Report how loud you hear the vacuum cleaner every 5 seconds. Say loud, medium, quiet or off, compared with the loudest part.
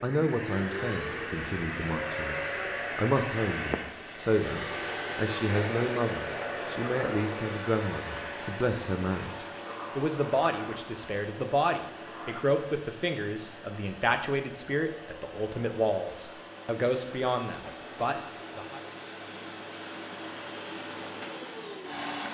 loud, loud, medium, medium, loud.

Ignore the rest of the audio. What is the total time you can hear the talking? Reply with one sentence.
You can hear the talking for 19 seconds altogether.